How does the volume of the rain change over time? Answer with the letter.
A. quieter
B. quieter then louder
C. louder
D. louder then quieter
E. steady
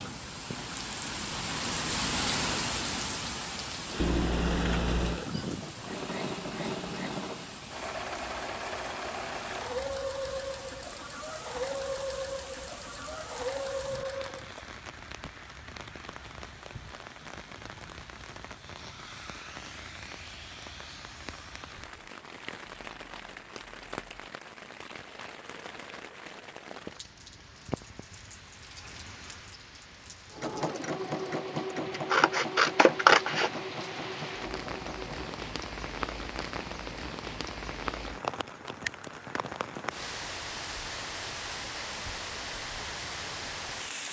B.